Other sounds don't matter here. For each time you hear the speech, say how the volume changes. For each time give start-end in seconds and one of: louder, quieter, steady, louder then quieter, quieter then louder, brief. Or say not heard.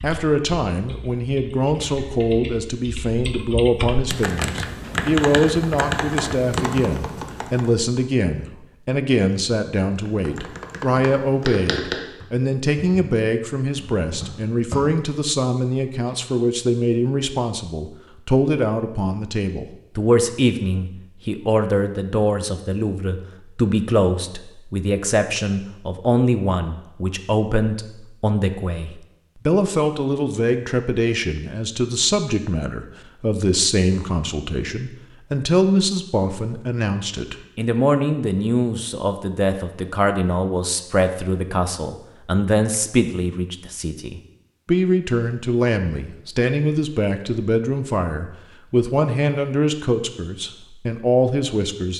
0.0-51.9 steady.